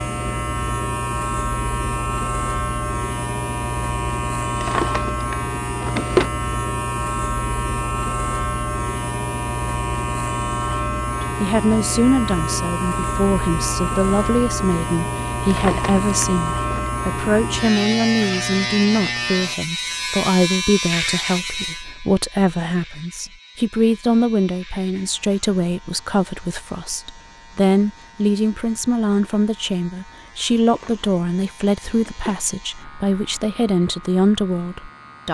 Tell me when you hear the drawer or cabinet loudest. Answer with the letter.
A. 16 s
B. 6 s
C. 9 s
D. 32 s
B.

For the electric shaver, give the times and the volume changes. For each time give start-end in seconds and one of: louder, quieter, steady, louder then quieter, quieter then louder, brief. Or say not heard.
0.0-35.2 quieter.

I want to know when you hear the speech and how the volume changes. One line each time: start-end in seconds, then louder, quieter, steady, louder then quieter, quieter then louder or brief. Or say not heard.
11.2-35.2 steady.